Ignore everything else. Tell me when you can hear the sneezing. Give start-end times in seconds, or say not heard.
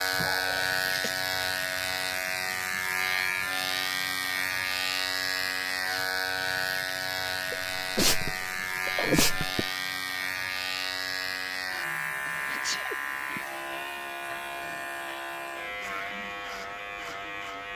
0.1-1.1, 7.5-9.7, 12.4-13.4.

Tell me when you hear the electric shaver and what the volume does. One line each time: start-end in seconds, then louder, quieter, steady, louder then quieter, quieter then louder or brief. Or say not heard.
0.0-17.7 quieter.